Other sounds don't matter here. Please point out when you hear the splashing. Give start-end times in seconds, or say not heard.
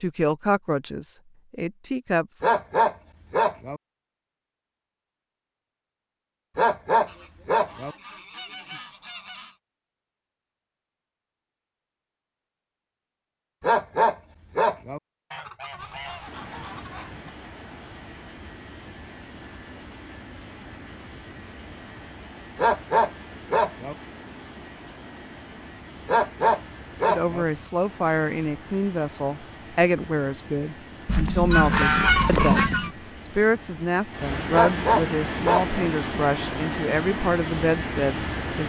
not heard.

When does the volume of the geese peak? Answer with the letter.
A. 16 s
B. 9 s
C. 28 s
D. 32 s
D.